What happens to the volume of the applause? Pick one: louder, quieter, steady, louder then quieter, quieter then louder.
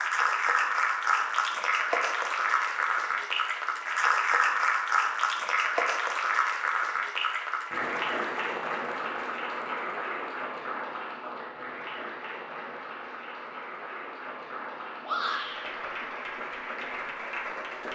quieter.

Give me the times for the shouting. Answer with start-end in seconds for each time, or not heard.
15.0-15.6.